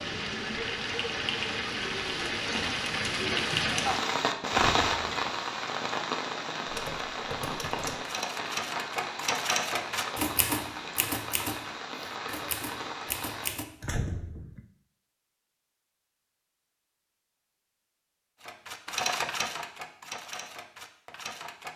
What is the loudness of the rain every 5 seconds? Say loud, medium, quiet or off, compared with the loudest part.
loud, medium, medium, off, off.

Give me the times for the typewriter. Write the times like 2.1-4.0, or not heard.
6.7-13.7, 18.4-21.7.